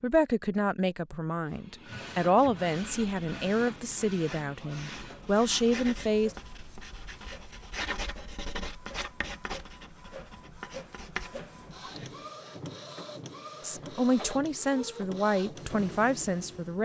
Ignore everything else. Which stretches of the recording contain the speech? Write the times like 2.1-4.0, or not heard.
0.0-6.3, 13.6-16.8.